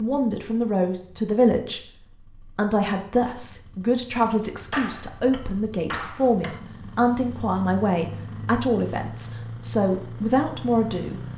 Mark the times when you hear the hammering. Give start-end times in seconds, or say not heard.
4.1-6.6.